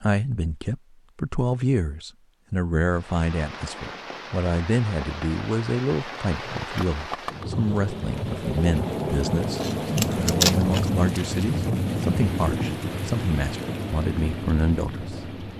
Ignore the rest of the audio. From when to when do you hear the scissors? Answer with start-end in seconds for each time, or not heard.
9.6-10.9.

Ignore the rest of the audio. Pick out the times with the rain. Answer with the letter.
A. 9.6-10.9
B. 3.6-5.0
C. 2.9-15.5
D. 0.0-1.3
C.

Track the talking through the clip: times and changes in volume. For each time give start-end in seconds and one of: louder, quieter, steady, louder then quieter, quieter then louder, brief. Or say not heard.
0.0-15.3 steady.